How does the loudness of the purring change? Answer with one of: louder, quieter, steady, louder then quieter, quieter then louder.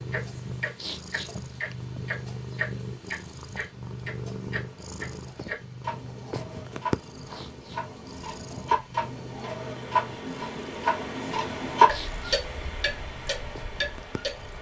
quieter.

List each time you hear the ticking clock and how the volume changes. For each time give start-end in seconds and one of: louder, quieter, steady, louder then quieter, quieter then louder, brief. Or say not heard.
0.1-14.5 quieter then louder.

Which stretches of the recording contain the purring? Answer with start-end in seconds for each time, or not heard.
0.0-14.5.